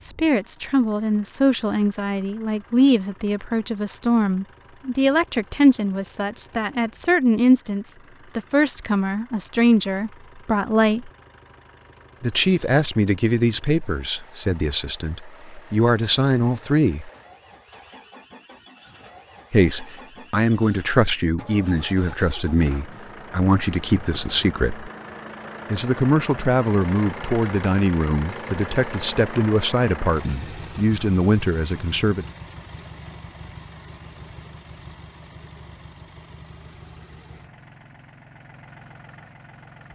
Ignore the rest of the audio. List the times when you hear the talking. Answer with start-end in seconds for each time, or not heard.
0.0-11.1, 12.2-17.1, 19.5-24.9, 25.7-32.2.